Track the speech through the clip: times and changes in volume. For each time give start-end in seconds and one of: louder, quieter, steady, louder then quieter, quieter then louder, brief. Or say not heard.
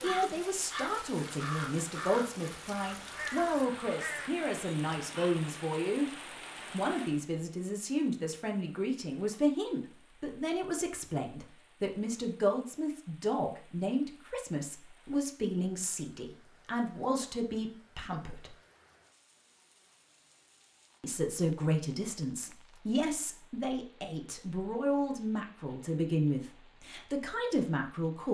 0.0-18.6 steady
21.0-28.2 steady.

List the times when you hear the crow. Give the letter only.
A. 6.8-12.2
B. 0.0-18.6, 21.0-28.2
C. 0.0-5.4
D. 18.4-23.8
C.